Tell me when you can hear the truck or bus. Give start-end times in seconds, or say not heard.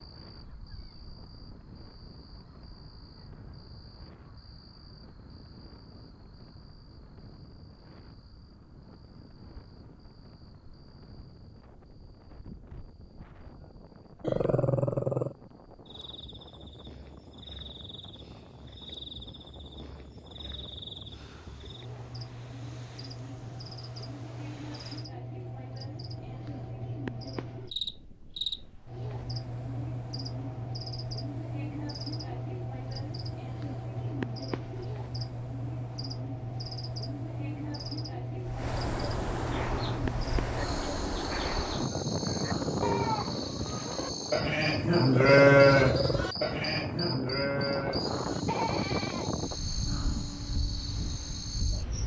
not heard.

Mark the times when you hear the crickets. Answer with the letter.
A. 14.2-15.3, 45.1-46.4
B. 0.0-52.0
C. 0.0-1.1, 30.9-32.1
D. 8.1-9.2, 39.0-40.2
B.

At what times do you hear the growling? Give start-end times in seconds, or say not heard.
14.2-15.3, 45.1-46.4.